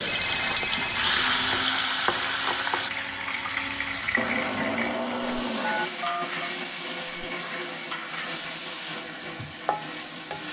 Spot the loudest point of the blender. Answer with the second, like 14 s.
5 s.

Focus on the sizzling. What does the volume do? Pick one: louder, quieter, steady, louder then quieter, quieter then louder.
quieter.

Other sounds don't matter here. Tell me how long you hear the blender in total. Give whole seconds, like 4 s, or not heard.
10 s.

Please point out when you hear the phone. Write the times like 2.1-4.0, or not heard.
0.1-1.6, 5.6-6.5.